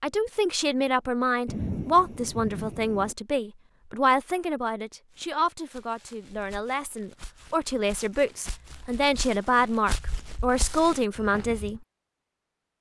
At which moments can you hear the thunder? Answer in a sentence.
The thunder can be heard from 1.4 to 3.1 s.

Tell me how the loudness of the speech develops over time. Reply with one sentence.
The volume of the speech goes down, then up.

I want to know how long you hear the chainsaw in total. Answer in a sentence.
You can't hear the chainsaw here.